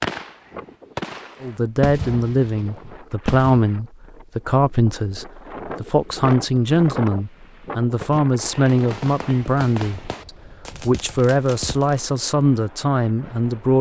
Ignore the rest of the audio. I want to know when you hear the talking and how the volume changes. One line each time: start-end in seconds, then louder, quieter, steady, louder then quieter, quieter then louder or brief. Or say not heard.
1.4-13.7 steady.